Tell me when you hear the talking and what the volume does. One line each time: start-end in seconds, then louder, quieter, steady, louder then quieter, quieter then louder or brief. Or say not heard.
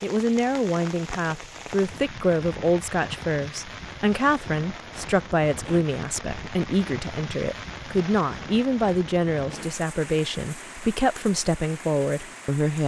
0.0-12.8 steady.